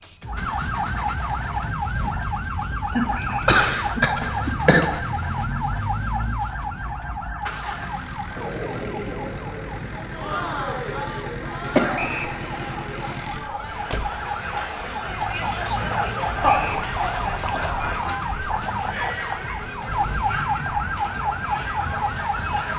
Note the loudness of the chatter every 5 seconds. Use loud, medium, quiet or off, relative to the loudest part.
off, loud, loud, loud, loud.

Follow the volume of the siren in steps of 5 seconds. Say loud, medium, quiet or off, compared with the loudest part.
loud, medium, medium, loud, loud.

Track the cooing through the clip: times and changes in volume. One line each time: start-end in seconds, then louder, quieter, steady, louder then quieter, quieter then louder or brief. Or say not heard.
not heard.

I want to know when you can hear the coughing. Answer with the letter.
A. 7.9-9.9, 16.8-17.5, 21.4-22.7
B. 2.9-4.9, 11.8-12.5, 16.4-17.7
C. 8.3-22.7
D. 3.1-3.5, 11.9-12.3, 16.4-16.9
B.